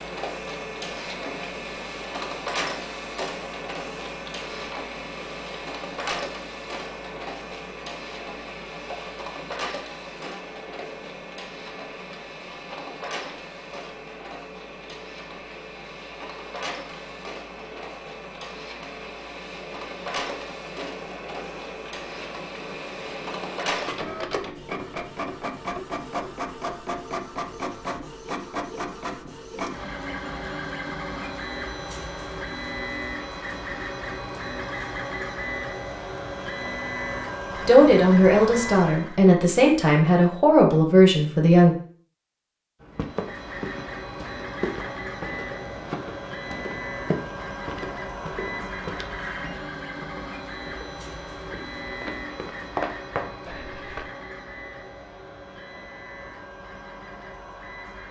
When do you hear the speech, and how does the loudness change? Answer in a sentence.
You can hear the speech from 37.6 to 41.8 s, at a steady volume.